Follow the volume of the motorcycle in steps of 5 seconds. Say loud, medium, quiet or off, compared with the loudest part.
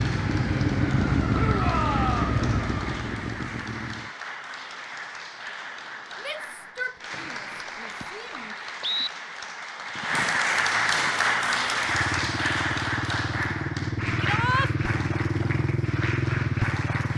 loud, off, medium, loud.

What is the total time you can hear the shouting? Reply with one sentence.
The shouting can be heard for 4 seconds in total.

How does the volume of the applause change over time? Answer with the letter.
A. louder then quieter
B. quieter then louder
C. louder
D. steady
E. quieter
A.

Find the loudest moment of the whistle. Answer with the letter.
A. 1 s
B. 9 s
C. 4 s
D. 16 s
B.